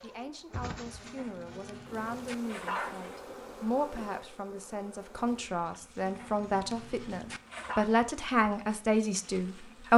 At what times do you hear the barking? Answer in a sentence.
You can hear the barking from 1.0 to 3.2 s and from 6.0 to 7.9 s.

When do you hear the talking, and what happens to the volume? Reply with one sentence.
The talking can be heard from 0.0 to 9.9 s, getting louder.